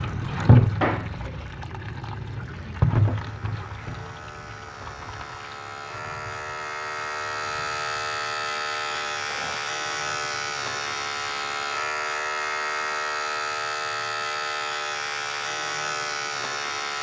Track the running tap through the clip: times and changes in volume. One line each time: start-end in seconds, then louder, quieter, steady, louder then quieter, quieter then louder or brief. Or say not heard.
0.0-11.7 quieter.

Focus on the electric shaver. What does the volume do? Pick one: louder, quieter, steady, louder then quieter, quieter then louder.
louder.